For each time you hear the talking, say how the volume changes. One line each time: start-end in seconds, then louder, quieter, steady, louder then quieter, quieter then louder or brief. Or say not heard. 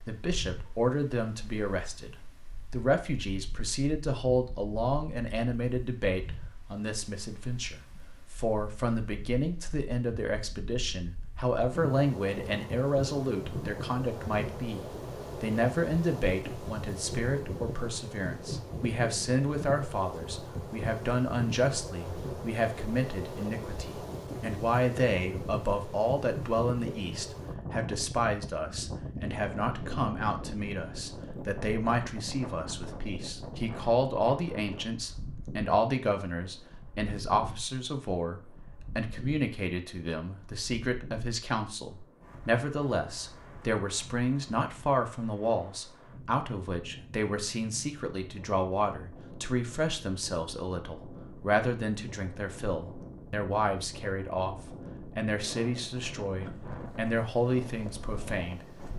0.1-58.6 steady.